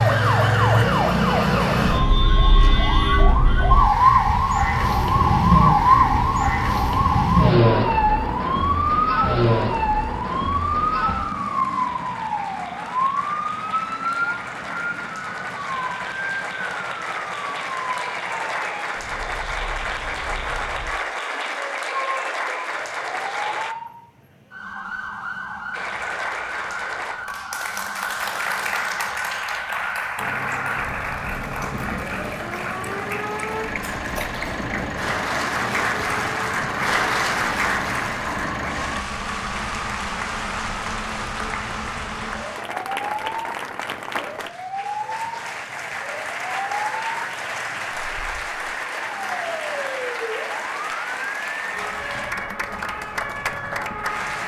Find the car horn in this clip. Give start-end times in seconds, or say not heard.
not heard.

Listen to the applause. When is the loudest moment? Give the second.
37 s.